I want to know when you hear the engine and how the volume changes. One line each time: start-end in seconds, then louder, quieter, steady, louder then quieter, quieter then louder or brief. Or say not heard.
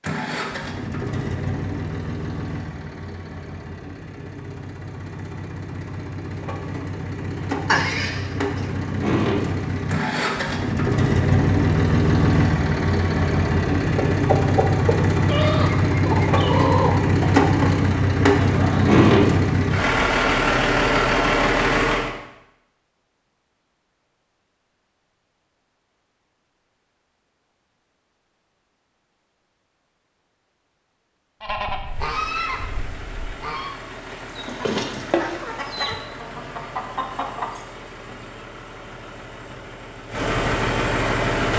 0.0-22.1 louder
31.9-41.5 louder.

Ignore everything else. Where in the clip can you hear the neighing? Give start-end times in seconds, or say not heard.
7.7-8.7.